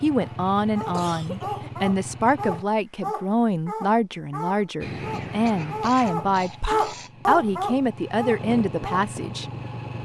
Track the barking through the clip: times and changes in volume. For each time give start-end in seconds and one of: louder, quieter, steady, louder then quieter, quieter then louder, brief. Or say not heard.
0.2-9.0 louder.